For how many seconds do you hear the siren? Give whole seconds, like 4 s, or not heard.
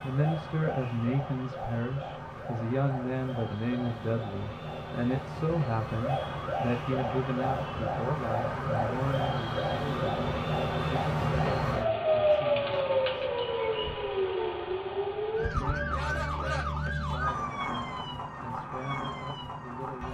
20 s.